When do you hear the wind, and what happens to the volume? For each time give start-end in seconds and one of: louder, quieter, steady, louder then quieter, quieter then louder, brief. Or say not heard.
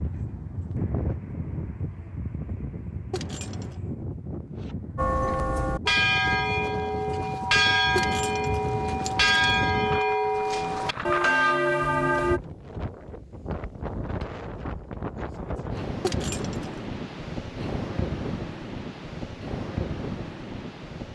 0.0-21.1 steady.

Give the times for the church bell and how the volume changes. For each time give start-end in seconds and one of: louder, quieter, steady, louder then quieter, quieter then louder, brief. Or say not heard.
5.0-12.4 steady.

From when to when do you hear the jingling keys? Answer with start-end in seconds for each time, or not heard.
3.1-3.8, 8.0-9.9, 16.0-16.9.